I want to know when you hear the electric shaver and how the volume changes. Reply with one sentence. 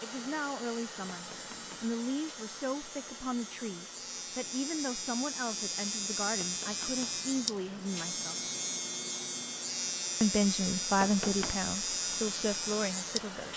You can hear the electric shaver from 0.0 to 13.5 s, getting louder.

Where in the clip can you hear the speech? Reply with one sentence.
The speech can be heard from 0.0 to 8.4 s and from 10.2 to 13.5 s.